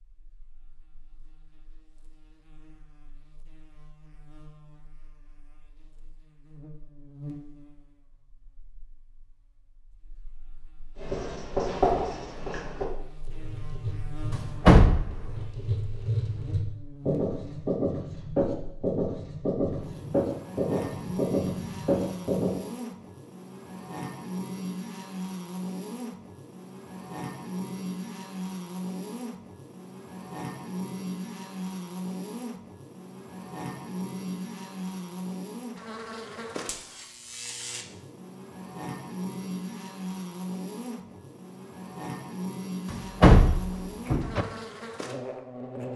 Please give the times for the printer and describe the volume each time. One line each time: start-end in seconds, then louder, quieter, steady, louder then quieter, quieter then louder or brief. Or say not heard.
not heard.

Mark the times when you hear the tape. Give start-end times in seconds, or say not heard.
not heard.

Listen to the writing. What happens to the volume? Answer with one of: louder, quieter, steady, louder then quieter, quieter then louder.
quieter then louder.